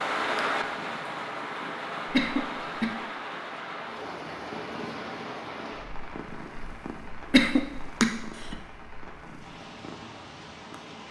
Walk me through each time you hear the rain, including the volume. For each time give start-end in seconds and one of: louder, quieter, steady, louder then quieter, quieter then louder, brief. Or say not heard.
0.0-11.0 quieter.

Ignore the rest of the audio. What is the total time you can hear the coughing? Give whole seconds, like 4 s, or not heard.
2 s.